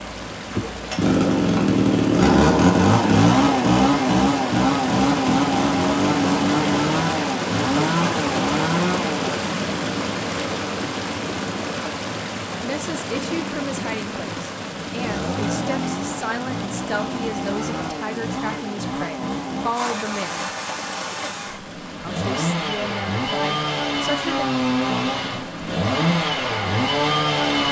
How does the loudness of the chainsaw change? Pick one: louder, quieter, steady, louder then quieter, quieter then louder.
quieter then louder.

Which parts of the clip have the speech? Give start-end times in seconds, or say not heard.
12.6-20.5, 22.1-24.4.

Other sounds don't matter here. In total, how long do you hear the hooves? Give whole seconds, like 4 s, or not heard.
not heard.